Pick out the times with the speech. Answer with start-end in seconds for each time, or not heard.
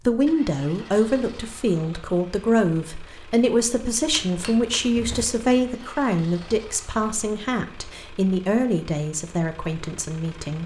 0.1-10.6.